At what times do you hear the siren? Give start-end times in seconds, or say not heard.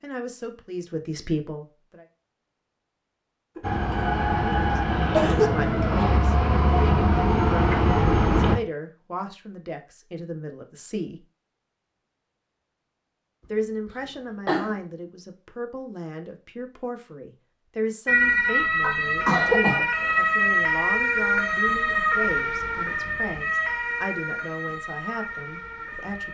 3.6-8.6, 18.1-26.2.